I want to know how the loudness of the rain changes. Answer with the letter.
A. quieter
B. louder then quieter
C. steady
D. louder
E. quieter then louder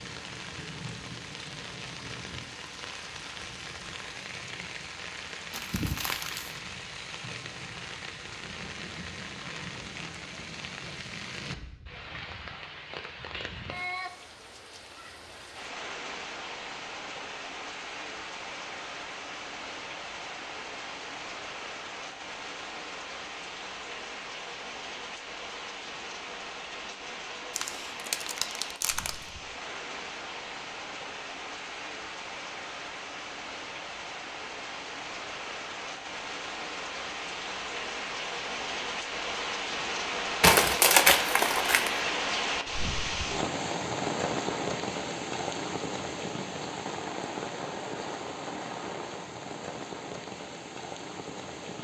D.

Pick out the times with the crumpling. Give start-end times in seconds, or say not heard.
5.5-6.5, 27.6-29.1, 40.4-41.9.